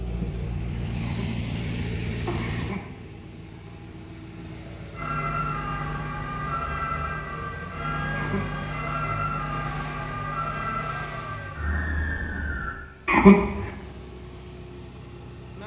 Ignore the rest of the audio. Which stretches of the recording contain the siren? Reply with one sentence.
The siren can be heard from 5.0 to 12.8 s.